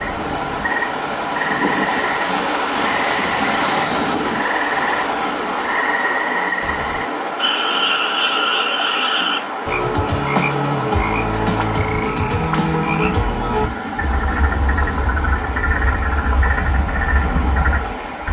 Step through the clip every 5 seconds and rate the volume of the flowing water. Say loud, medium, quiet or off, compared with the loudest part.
loud, loud, medium, medium.